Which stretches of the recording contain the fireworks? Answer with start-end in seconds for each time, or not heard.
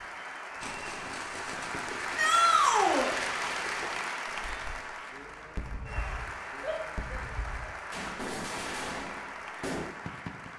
0.6-10.5.